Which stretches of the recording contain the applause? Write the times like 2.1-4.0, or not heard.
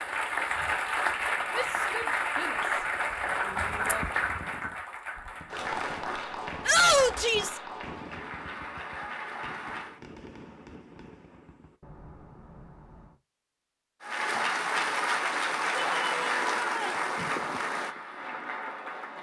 0.0-10.0, 14.0-19.1.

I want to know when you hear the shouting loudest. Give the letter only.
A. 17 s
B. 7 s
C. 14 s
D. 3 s
B.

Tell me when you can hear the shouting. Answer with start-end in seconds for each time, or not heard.
1.6-2.9, 3.5-4.0, 6.7-7.6, 15.8-17.1.